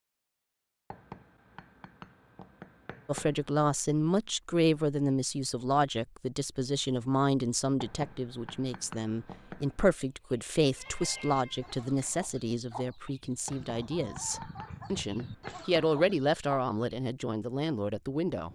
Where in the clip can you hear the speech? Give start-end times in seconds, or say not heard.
3.0-18.5.